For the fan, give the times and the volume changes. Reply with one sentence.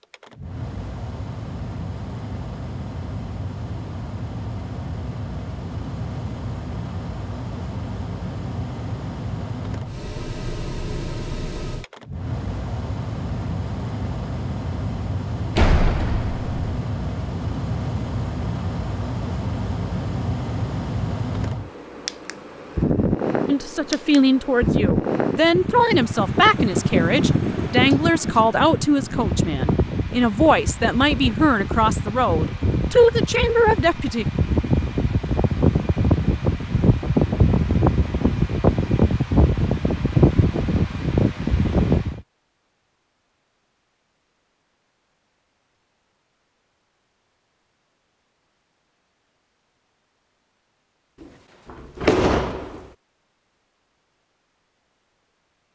You can hear the fan from 0.0 to 42.2 s, getting louder.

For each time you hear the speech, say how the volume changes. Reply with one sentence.
You can hear the speech from 23.4 to 34.2 s, at a steady volume.